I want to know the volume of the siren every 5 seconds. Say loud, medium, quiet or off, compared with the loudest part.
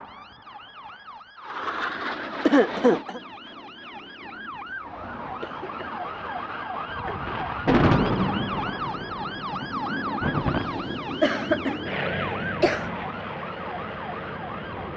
medium, loud, loud.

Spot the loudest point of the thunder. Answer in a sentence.
The volume of the thunder peaks at 8 seconds.